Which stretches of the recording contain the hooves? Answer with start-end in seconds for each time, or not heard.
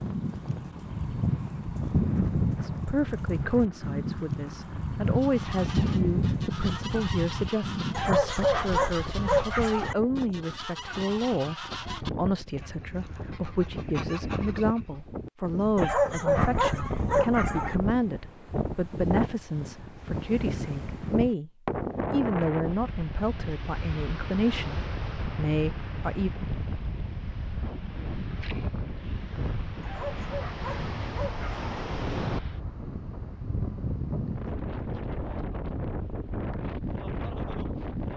0.0-8.3.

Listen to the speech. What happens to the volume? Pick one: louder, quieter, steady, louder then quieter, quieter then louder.
steady.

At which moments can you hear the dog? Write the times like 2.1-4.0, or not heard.
7.9-9.9, 15.8-17.8, 29.8-31.7.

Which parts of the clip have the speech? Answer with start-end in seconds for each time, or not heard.
2.6-21.5, 22.1-26.3.